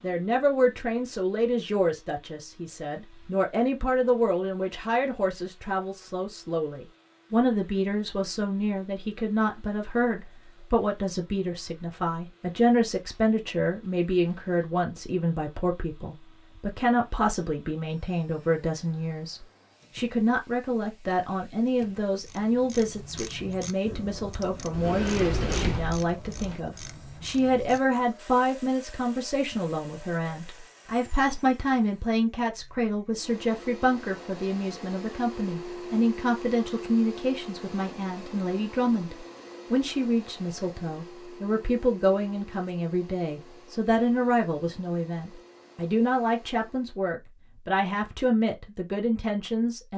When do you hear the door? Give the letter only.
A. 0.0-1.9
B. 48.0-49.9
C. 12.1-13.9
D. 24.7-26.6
D.